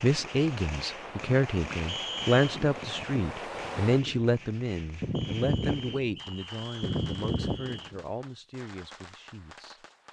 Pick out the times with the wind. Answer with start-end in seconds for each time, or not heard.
0.0-8.0.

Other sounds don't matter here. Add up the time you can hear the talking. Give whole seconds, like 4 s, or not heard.
10 s.